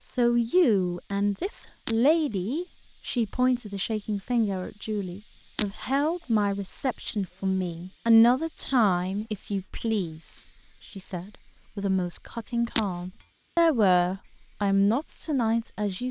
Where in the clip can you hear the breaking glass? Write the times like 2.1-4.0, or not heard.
1.9-2.4, 5.5-6.0, 12.8-13.2.